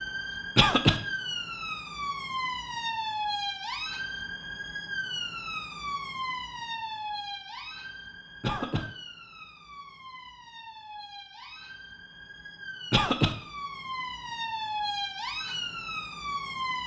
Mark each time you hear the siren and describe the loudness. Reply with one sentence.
The siren can be heard from 0.0 to 16.8 s, getting quieter then louder.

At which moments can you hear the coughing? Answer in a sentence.
The coughing can be heard from 0.6 to 1.0 s, from 8.4 to 8.8 s and from 12.9 to 13.3 s.